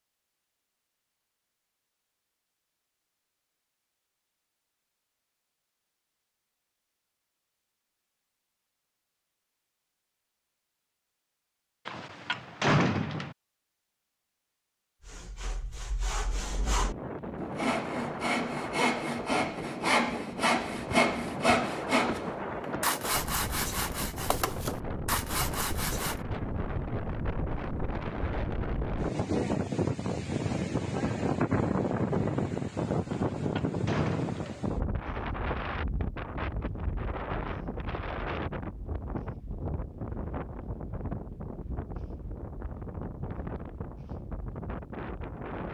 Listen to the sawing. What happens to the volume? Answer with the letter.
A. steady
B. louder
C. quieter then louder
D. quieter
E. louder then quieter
E.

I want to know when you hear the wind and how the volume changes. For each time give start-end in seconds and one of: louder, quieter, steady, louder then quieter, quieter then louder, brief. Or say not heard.
16.2-45.7 louder then quieter.